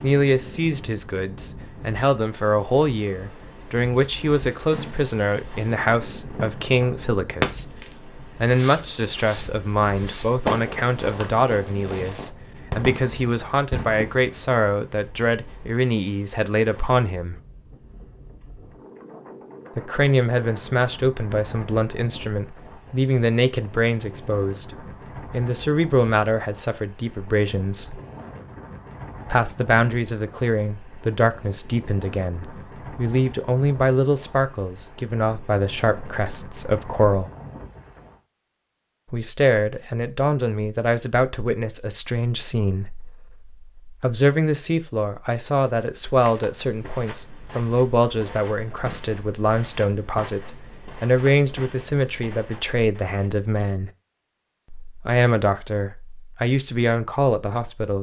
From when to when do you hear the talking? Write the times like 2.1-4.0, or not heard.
0.0-17.4, 19.8-24.7, 25.3-28.0, 29.3-37.3, 39.1-53.9, 54.9-57.9.